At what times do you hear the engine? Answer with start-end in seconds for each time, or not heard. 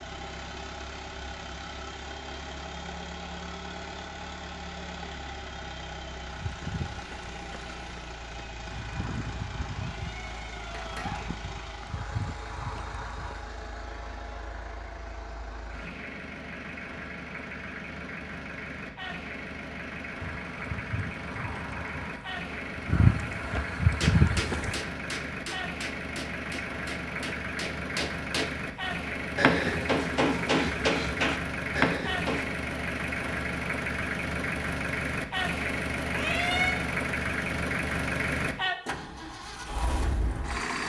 0.0-40.8.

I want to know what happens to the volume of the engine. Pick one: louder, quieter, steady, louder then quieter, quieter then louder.
louder.